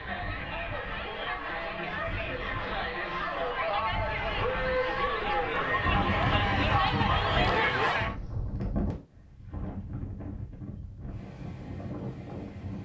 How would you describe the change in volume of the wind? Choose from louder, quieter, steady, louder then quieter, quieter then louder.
louder then quieter.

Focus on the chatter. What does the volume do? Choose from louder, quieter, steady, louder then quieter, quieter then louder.
louder.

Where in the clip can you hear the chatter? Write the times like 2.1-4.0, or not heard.
0.0-8.2.